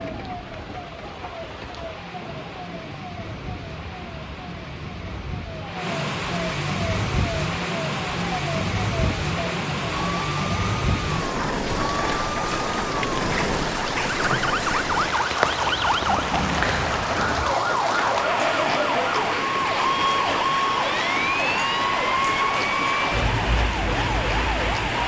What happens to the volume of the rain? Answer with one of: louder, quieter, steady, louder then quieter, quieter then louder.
louder.